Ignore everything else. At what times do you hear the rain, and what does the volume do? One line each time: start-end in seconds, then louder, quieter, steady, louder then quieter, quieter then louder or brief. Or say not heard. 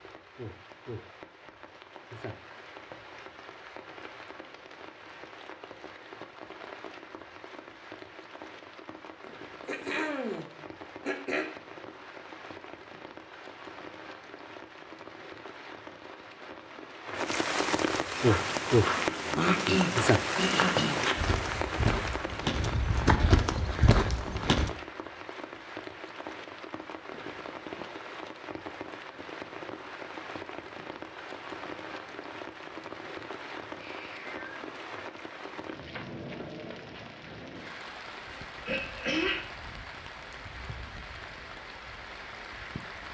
0.0-43.0 louder then quieter.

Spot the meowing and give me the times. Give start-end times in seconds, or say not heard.
33.8-34.6.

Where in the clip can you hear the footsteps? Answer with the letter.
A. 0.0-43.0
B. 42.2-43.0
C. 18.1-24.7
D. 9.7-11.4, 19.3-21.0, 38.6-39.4
C.